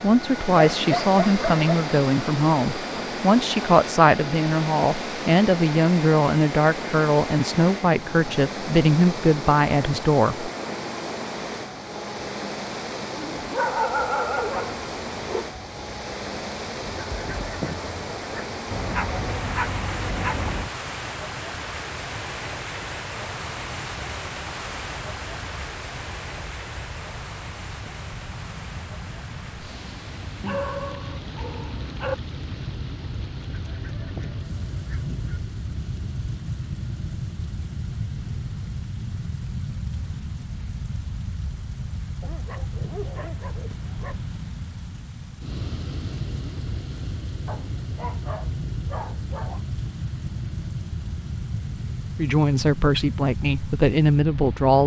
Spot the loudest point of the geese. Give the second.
18 s.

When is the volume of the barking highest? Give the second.
14 s.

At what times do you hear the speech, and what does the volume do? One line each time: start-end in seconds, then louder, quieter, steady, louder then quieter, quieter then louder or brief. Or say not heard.
0.0-10.5 steady
52.1-54.8 brief.